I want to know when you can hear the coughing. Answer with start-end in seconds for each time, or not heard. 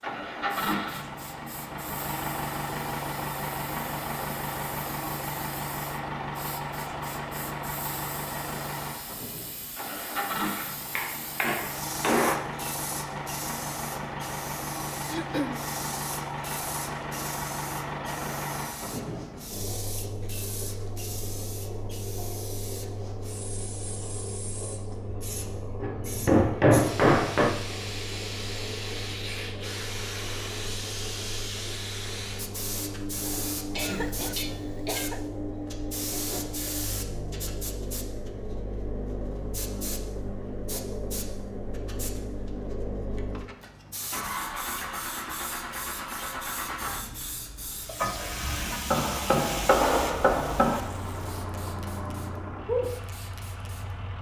15.1-15.7, 33.7-35.2.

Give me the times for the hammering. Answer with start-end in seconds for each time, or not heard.
10.6-12.4, 25.8-27.5, 48.9-50.8.